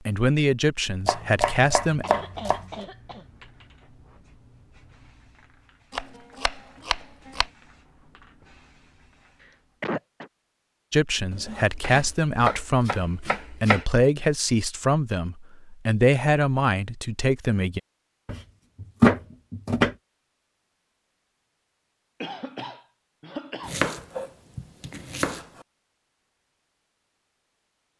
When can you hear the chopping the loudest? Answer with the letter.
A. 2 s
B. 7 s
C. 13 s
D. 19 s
D.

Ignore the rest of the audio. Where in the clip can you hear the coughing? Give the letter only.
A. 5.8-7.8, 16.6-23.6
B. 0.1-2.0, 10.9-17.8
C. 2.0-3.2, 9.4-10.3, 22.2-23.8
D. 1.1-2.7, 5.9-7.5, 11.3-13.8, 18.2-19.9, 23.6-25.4
C.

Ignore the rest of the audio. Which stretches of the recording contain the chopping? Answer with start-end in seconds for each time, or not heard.
1.1-2.7, 5.9-7.5, 11.3-13.8, 18.2-19.9, 23.6-25.4.